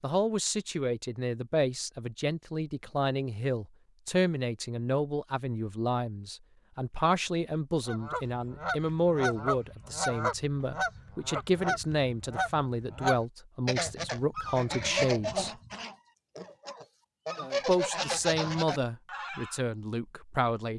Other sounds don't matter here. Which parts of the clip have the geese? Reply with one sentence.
The geese can be heard from 7.8 to 19.6 s.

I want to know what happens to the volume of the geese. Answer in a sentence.
The loudness of the geese stays about the same.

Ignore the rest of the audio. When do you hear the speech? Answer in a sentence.
You can hear the speech from 0.0 to 15.6 s and from 17.6 to 20.7 s.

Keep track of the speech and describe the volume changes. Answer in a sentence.
The loudness of the speech stays about the same.